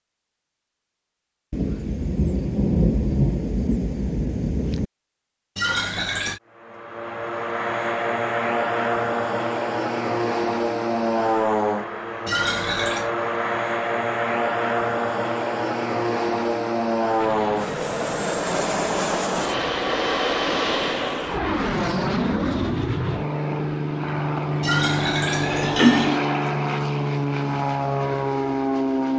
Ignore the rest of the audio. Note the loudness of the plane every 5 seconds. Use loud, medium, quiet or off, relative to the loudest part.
off, loud, loud, loud, loud, loud.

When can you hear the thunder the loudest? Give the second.
3 s.